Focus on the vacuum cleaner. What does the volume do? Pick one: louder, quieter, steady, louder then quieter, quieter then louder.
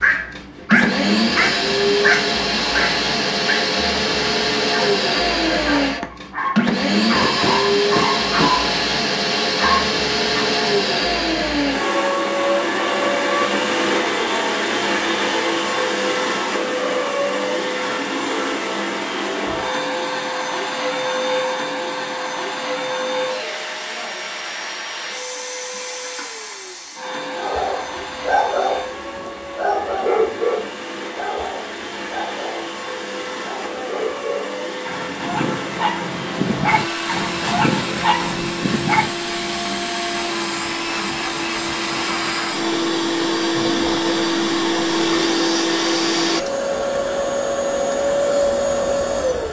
quieter then louder.